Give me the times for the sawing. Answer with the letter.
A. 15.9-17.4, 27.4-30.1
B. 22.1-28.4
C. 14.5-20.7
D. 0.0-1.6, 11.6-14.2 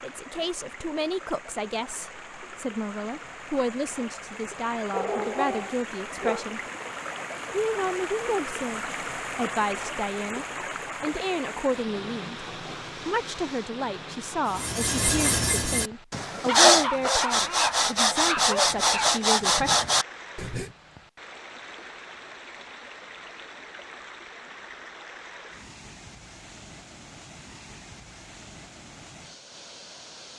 C.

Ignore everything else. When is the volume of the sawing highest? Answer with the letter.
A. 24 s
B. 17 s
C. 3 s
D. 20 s
B.